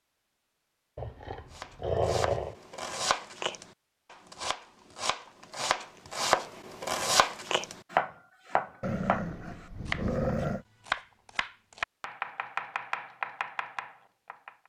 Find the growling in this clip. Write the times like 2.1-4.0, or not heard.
0.9-2.5, 8.8-10.7.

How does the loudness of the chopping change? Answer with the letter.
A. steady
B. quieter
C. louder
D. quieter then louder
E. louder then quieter
E.